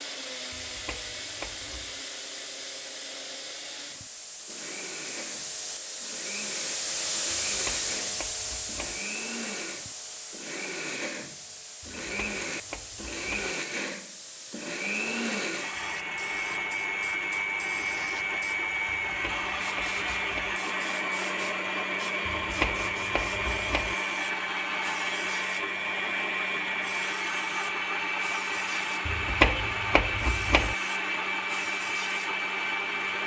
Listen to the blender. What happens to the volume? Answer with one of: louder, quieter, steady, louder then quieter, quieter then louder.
louder.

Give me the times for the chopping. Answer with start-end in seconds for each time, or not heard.
0.5-2.0, 7.5-9.0, 11.8-13.6, 19.1-20.6, 22.2-23.9, 29.1-30.8.